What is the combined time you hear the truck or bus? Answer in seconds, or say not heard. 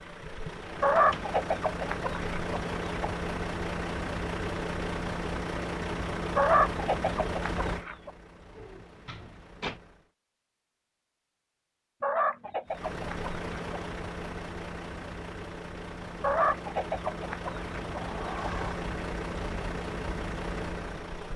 19 s.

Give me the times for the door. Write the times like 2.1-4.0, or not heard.
0.9-1.4, 8.5-9.8, 17.9-18.9.